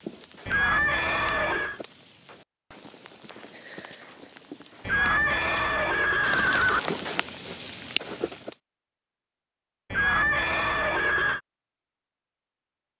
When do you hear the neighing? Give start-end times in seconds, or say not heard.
0.5-1.8, 4.8-6.8, 9.9-11.4.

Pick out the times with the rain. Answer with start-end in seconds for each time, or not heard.
0.0-8.6.